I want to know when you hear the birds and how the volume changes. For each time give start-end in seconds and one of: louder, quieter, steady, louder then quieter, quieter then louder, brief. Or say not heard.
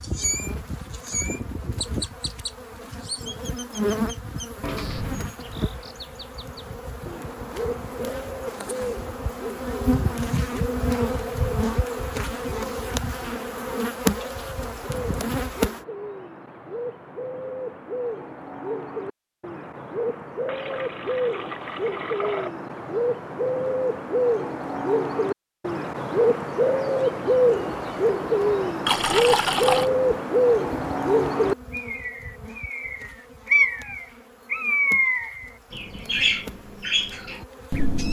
0.0-38.0 louder.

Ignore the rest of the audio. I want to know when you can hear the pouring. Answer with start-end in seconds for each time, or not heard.
4.6-5.3, 20.4-22.5, 28.9-29.9.